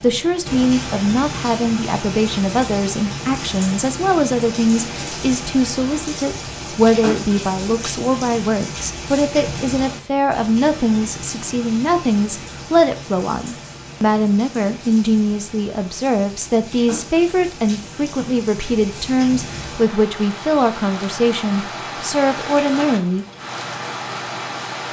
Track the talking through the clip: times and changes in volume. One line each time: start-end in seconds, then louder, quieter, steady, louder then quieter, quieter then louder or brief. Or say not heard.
0.0-23.2 steady.